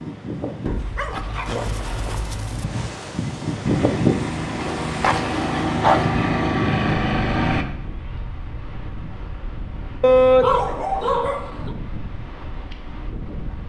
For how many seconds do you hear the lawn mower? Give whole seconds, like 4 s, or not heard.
4 s.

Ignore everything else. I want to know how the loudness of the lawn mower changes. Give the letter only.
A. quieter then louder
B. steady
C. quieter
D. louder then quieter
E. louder
E.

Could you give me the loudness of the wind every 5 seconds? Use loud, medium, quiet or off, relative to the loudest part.
loud, medium, medium.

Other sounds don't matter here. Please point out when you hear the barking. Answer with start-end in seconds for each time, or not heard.
0.7-2.6, 4.6-6.0, 10.0-11.7.